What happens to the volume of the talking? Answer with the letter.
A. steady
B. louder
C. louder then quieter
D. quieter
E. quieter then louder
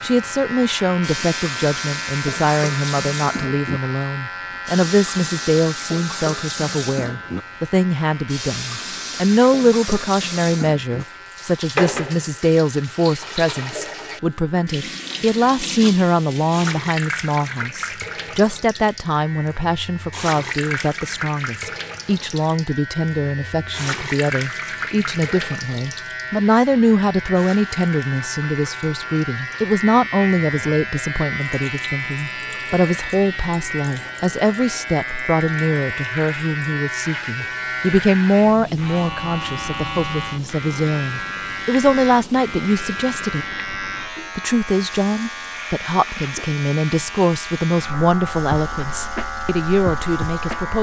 A.